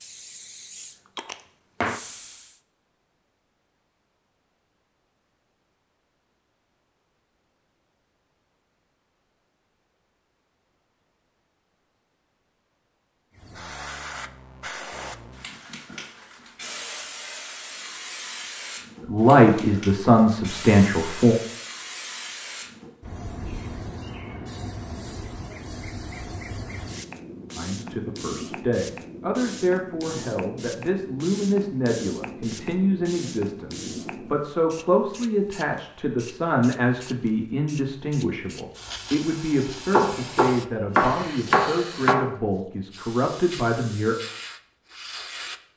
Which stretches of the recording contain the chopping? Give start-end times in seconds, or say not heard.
39.9-42.2.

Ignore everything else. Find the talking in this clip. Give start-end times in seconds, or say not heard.
19.1-21.4, 27.6-44.1.